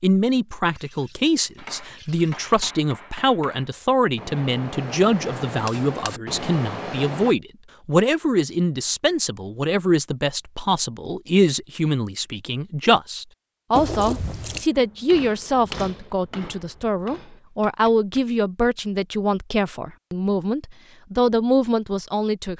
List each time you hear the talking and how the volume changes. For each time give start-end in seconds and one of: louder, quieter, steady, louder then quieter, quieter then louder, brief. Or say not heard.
0.0-22.5 steady.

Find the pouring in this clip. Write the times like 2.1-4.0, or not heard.
0.8-2.8, 13.8-14.7.